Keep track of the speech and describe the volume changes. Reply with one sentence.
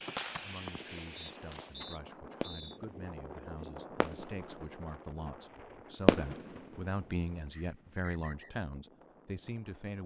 The volume of the speech goes up.